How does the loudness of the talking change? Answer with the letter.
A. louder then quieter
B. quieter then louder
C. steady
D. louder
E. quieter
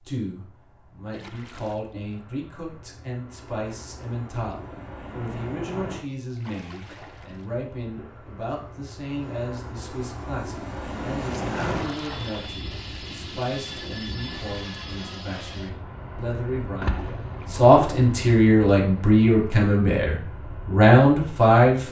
D.